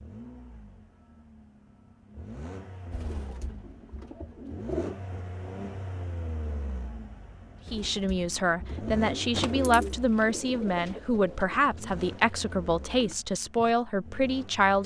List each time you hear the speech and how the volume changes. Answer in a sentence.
The speech can be heard from 7.7 to 14.8 s, at a steady volume.